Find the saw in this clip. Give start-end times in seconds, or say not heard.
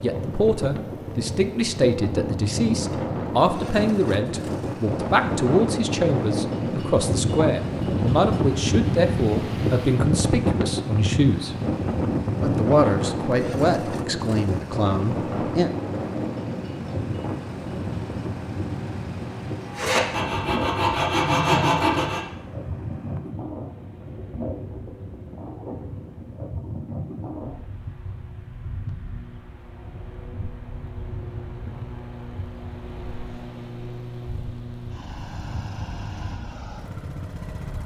19.6-22.2.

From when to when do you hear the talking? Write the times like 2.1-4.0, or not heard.
0.0-11.6, 12.4-15.7.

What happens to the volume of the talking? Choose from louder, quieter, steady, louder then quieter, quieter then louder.
steady.